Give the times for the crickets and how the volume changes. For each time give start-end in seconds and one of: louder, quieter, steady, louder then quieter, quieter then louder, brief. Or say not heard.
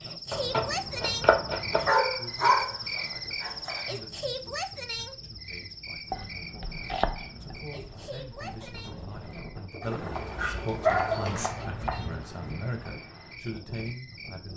0.0-14.5 quieter.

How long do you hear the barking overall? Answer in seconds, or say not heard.
4 s.